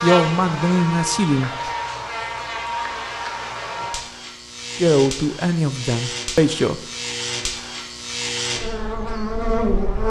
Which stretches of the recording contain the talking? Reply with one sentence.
The talking can be heard from 0.0 to 1.5 s and from 4.8 to 6.8 s.